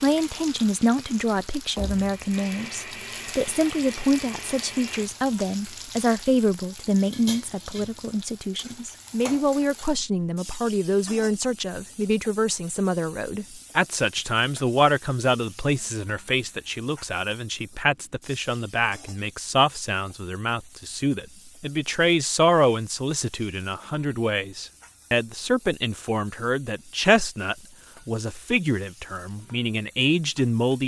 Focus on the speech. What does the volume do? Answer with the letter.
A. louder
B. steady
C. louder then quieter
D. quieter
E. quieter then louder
B.